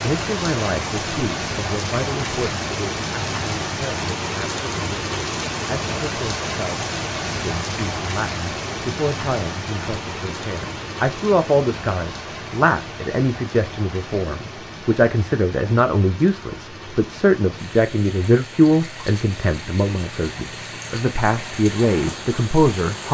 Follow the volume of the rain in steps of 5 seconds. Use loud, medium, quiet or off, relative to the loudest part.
loud, loud, medium, medium, medium.